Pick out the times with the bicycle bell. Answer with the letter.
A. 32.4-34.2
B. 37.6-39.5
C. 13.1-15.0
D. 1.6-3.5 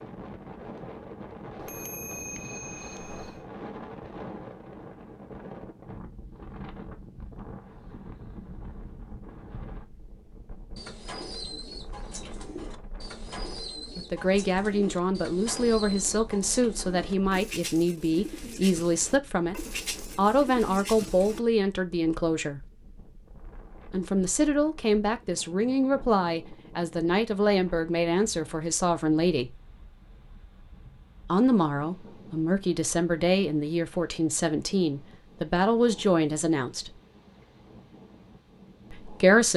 D.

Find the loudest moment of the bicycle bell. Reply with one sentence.
The volume of the bicycle bell peaks at 2 seconds.